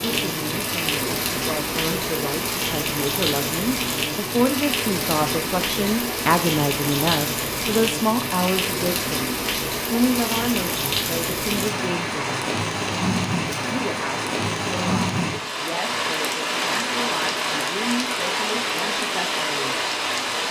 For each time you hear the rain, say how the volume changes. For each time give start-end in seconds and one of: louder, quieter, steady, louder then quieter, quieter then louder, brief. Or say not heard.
0.0-20.4 steady.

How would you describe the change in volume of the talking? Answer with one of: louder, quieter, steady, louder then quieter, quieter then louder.
louder then quieter.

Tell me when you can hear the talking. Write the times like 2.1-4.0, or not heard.
0.0-12.4, 13.7-19.8.